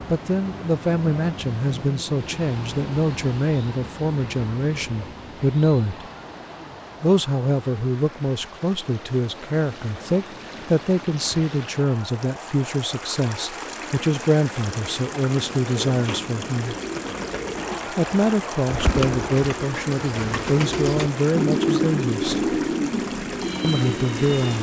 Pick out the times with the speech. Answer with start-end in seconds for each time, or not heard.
0.1-6.0, 7.0-16.8, 17.9-22.4, 23.6-24.5.